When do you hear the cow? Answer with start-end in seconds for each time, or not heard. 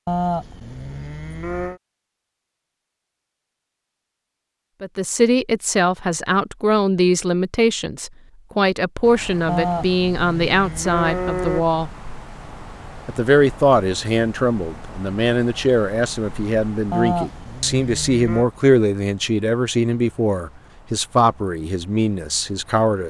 0.1-1.8, 9.4-11.7, 16.9-18.4.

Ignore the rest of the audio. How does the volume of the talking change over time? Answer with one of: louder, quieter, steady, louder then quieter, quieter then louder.
steady.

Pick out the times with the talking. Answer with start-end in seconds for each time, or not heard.
4.8-11.9, 13.1-23.0.